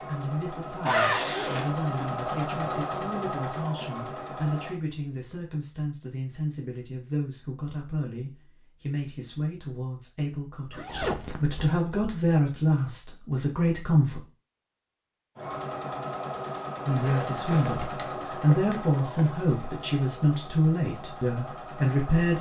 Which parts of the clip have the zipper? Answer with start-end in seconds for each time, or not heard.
0.8-2.1, 10.7-11.8, 17.0-19.6.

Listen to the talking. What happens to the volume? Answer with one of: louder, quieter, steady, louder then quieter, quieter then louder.
louder.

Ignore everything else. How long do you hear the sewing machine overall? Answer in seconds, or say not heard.
12 s.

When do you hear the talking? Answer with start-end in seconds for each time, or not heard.
0.0-14.2, 16.9-22.3.